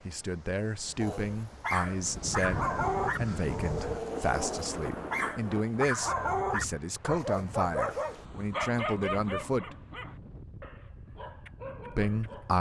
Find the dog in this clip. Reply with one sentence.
The dog can be heard from 0.9 to 12.5 s.